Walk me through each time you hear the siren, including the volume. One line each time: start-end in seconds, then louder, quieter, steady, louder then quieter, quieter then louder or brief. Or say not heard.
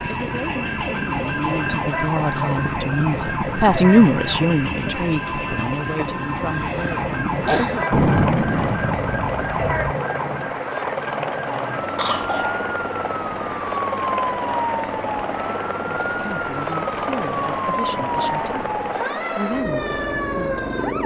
0.0-21.0 steady.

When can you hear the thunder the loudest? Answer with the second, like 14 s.
8 s.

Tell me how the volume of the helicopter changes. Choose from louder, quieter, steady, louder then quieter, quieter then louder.
steady.